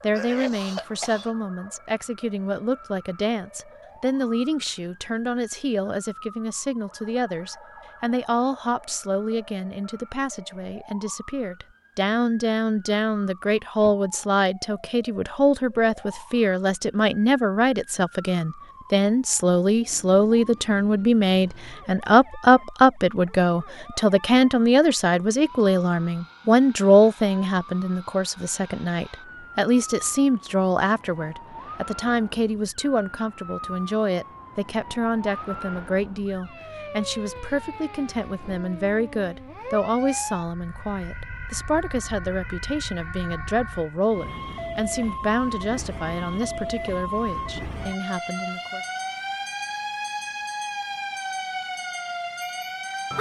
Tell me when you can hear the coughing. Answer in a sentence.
The coughing can be heard from 0.1 to 1.3 s.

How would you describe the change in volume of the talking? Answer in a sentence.
The loudness of the talking goes up, then down.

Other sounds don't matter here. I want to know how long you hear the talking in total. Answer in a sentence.
The talking can be heard for 49 seconds in total.